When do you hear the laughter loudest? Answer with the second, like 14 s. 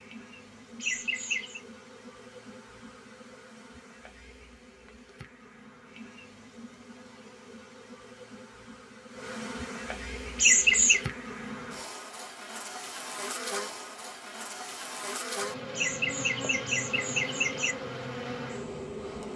11 s.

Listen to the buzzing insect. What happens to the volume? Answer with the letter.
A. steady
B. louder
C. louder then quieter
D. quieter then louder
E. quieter
B.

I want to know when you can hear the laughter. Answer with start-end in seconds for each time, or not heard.
0.8-1.6, 10.3-11.0, 15.7-17.8.